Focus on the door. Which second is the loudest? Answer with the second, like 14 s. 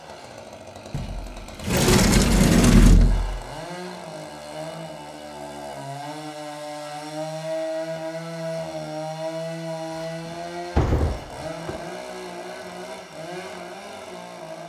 3 s.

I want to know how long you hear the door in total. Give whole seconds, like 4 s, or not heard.
4 s.